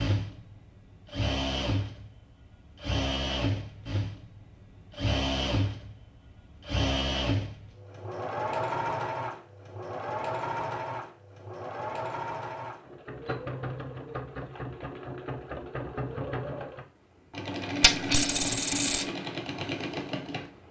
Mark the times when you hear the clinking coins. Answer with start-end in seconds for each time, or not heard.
17.8-19.1.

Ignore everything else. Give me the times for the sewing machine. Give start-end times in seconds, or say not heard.
0.0-20.6.